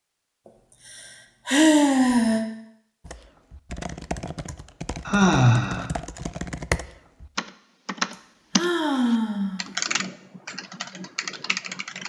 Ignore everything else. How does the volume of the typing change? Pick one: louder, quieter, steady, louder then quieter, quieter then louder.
louder then quieter.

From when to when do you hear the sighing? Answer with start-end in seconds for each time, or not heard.
0.9-2.5, 5.0-5.8, 8.1-9.7.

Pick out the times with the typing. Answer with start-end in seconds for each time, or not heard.
3.0-12.0.